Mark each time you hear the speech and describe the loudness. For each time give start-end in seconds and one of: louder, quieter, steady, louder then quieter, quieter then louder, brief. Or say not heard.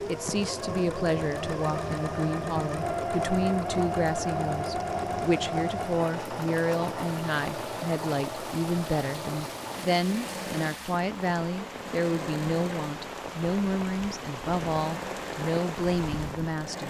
0.1-16.8 steady.